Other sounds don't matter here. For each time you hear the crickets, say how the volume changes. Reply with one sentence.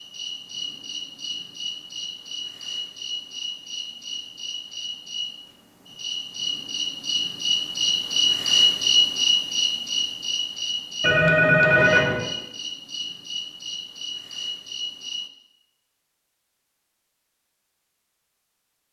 You can hear the crickets from 0.0 to 15.3 s, getting louder then quieter.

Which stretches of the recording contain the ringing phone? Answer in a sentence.
The ringing phone can be heard from 11.0 to 12.3 s.